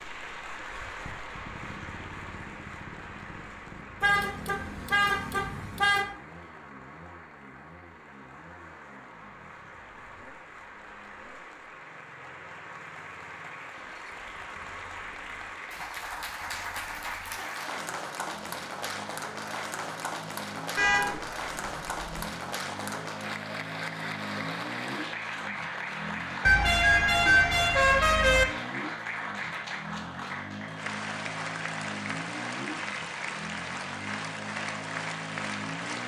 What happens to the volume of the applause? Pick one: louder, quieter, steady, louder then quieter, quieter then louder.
louder.